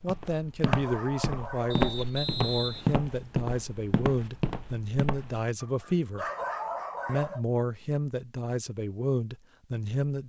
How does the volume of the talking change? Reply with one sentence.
The loudness of the talking stays about the same.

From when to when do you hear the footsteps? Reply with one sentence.
You can hear the footsteps from 0.0 to 5.5 s.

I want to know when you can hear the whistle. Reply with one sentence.
The whistle can be heard from 1.7 to 3.0 s.